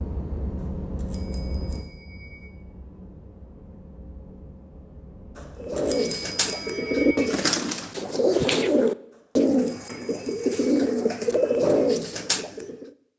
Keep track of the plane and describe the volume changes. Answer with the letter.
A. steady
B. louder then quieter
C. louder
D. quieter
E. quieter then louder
D.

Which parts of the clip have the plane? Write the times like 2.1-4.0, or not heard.
0.0-7.3.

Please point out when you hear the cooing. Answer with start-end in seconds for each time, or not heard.
5.6-12.9.